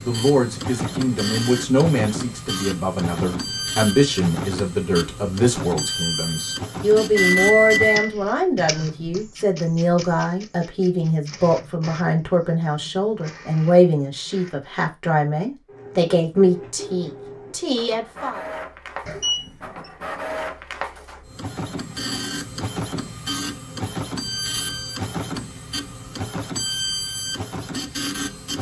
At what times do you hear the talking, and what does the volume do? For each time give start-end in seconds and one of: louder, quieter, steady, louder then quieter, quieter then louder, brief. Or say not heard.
0.0-18.4 steady.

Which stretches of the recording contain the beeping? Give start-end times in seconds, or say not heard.
7.2-8.0, 19.1-19.5.